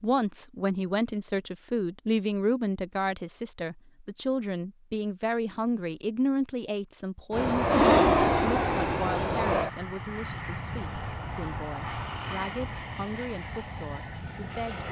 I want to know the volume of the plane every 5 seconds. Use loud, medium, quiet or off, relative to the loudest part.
off, loud, quiet.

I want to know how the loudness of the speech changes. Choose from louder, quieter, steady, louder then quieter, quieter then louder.
quieter.